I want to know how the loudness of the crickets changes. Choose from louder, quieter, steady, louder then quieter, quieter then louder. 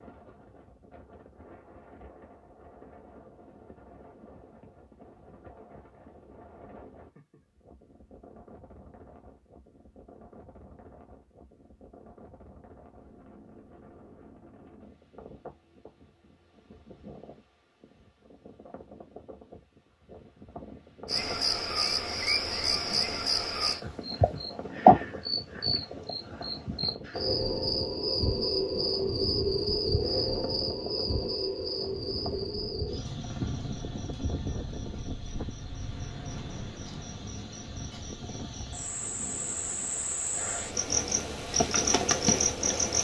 quieter then louder.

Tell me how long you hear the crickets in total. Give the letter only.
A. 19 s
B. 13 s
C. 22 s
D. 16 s
C.